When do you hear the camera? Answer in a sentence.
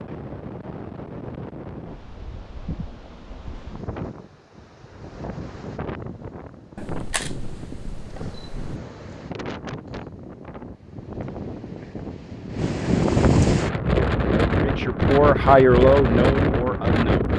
The camera can be heard from 6.8 to 8.6 s.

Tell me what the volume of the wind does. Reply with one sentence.
The volume of the wind goes up.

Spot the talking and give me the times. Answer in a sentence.
The talking can be heard from 14.6 to 17.1 s.